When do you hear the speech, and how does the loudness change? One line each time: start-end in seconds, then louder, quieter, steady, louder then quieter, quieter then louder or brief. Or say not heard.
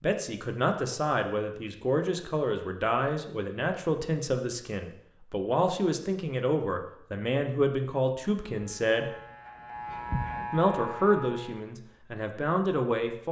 0.0-9.1 steady
10.5-13.2 brief.